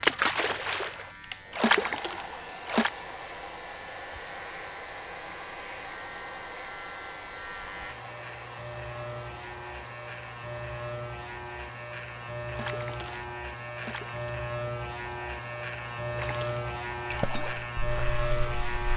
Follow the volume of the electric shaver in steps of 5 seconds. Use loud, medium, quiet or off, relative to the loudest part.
quiet, medium, loud, loud.